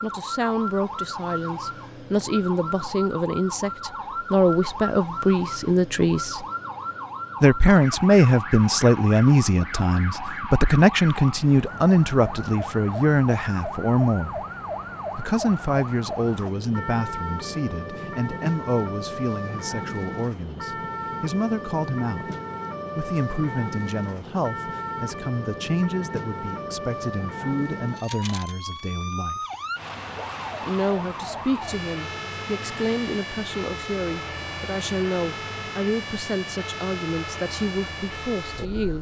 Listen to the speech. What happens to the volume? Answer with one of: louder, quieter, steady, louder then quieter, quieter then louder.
quieter.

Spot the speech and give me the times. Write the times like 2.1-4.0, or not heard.
0.0-6.5, 7.4-14.4, 15.2-22.4, 22.9-29.4, 30.6-38.9.